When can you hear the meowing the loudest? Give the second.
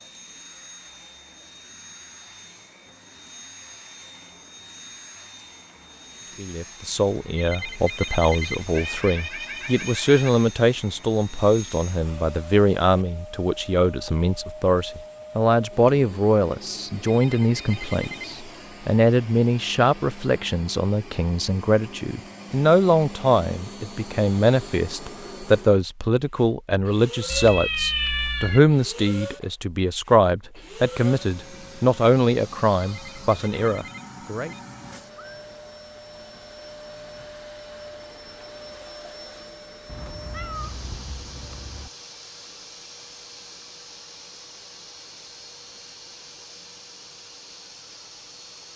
28 s.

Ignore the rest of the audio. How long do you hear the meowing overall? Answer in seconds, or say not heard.
5 s.